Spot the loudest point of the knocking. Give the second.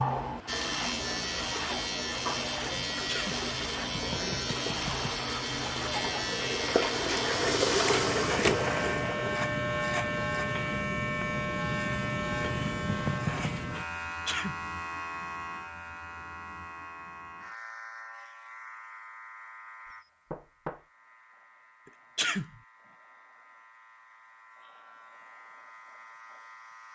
13 s.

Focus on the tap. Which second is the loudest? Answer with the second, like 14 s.
8 s.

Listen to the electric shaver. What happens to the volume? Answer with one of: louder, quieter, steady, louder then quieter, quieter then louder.
quieter.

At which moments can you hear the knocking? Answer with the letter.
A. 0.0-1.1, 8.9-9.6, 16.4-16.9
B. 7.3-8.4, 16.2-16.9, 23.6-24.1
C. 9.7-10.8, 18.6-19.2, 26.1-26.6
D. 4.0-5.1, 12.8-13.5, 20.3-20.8
D.